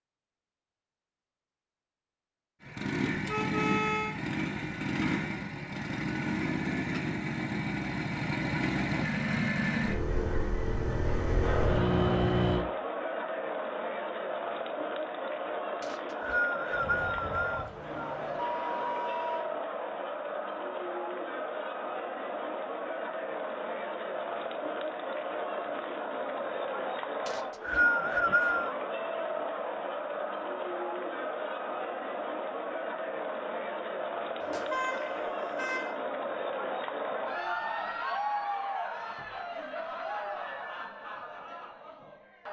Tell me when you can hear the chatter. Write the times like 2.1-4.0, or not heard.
11.4-42.4.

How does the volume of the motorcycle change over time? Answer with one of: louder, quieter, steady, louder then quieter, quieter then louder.
steady.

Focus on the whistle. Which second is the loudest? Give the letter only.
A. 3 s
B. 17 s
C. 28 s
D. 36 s
C.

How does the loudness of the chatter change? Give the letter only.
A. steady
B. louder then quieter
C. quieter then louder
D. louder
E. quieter
A.